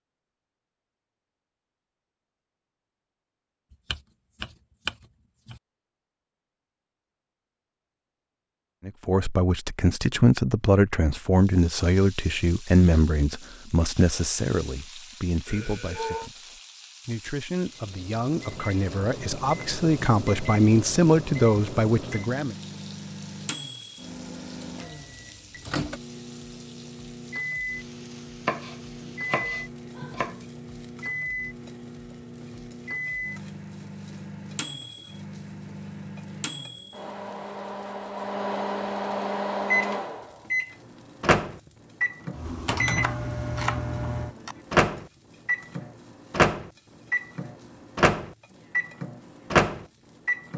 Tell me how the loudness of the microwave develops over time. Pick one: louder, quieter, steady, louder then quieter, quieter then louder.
louder.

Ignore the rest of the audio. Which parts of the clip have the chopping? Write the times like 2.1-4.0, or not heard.
3.7-5.6, 28.4-30.4, 43.0-44.6.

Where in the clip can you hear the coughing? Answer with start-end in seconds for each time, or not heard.
not heard.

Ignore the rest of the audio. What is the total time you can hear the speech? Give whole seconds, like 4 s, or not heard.
14 s.